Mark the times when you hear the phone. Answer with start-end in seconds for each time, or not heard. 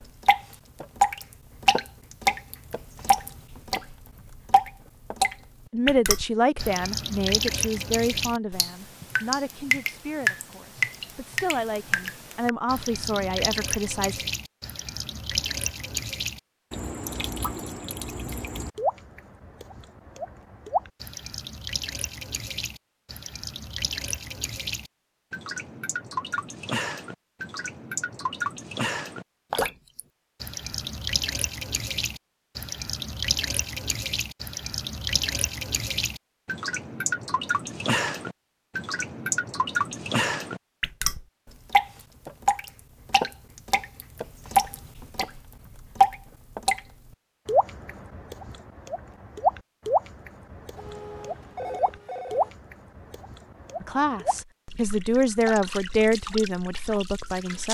50.8-52.5.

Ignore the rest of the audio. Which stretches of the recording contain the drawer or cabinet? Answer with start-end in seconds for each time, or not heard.
not heard.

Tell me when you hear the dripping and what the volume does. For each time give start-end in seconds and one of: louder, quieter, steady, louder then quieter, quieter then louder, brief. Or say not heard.
0.2-46.8 quieter then louder
47.5-57.6 quieter.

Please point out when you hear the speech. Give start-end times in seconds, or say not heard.
5.7-14.2, 53.8-57.6.